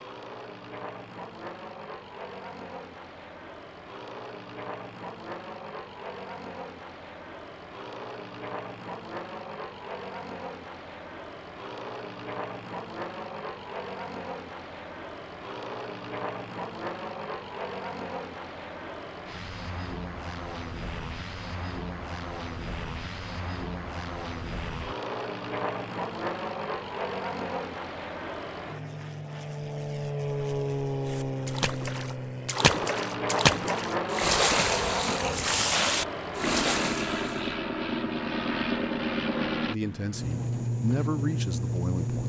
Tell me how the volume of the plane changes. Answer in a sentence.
The loudness of the plane goes up.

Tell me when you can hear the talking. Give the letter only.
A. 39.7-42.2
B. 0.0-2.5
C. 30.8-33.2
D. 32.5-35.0
A.